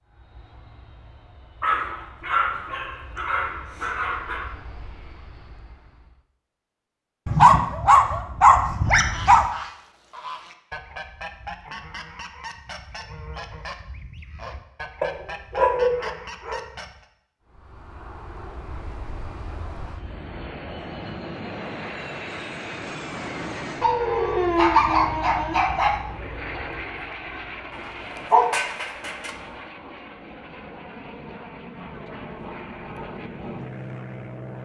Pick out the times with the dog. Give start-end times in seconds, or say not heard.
1.6-4.5, 7.2-9.4, 15.0-16.6, 23.8-26.0, 27.7-29.4.